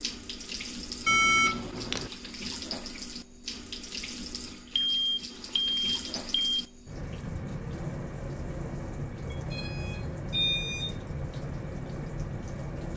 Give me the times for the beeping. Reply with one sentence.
You can hear the beeping from 1.1 to 2.1 s, from 4.8 to 6.5 s and from 9.3 to 10.9 s.